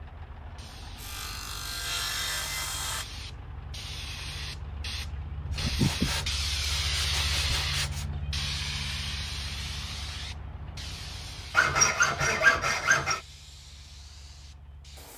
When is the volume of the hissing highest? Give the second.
7 s.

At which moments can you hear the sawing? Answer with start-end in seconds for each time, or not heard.
0.9-3.0, 5.5-8.1, 11.5-13.2.